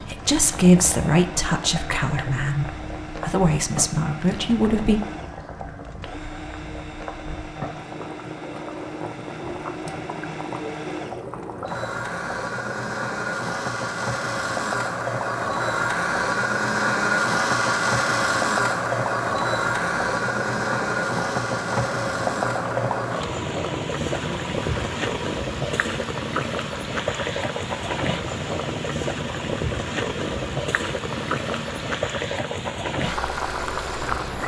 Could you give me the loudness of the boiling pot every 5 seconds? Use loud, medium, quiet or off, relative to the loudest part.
medium, medium, medium, loud, loud, loud, loud.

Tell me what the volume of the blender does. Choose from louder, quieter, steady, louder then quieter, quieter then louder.
louder then quieter.